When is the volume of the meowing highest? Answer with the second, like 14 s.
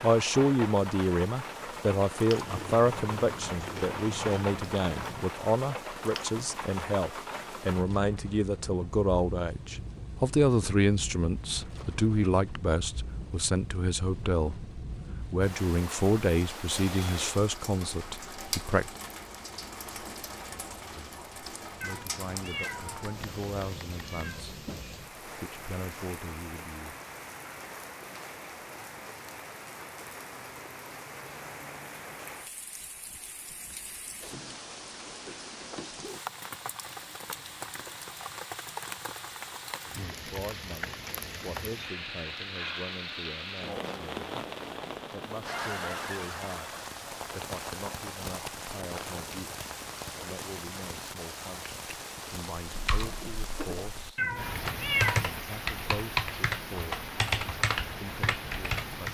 55 s.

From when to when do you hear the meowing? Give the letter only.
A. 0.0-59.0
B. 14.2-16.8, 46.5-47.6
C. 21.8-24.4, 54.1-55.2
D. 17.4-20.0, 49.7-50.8
C.